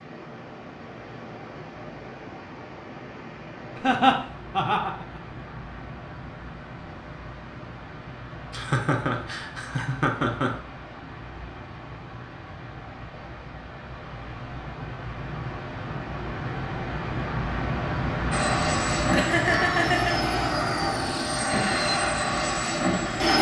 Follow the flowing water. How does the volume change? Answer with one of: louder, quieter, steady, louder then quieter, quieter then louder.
louder.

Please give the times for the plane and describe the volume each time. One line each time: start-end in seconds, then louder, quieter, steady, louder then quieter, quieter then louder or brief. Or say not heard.
18.3-23.3 steady.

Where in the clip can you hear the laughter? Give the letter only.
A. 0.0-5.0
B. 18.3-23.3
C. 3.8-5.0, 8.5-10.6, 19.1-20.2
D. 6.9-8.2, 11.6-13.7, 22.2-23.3
C.